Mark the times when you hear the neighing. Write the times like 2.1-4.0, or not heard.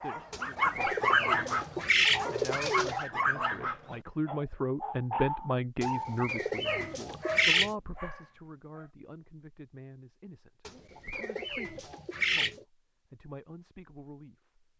not heard.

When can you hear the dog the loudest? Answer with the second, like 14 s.
1 s.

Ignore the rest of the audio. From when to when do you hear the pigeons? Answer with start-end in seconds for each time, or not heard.
0.3-3.0, 5.8-7.8, 10.7-12.7.